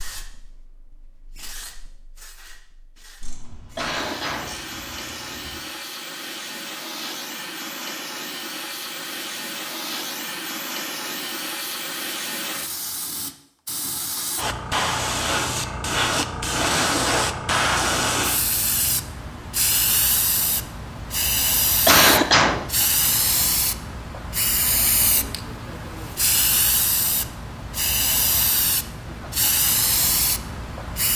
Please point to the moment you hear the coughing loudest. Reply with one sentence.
The loudest moment of the coughing is at 22 seconds.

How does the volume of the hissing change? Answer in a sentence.
The volume of the hissing goes up.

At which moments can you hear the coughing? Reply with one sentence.
The coughing can be heard from 3.8 to 4.5 s, from 16.6 to 17.4 s and from 21.9 to 22.6 s.